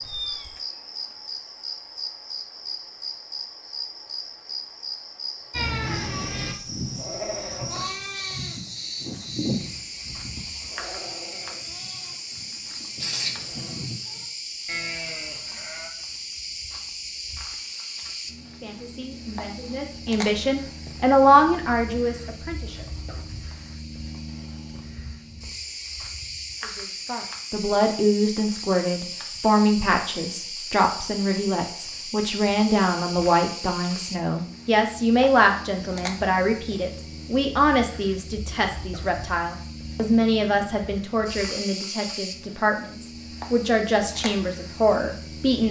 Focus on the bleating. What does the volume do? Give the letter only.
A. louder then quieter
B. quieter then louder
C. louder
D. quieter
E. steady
B.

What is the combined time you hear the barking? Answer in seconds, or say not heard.
not heard.